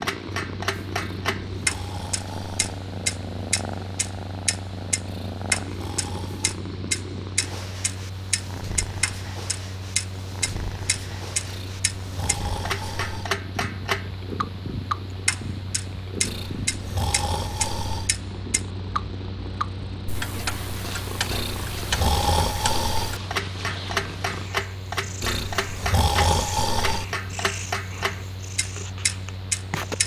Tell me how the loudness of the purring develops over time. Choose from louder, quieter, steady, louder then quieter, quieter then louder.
steady.